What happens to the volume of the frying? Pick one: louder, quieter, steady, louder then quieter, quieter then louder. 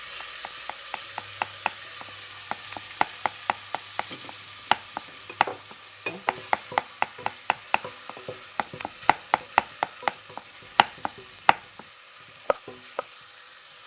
quieter.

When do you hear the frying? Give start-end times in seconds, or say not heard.
0.0-13.8.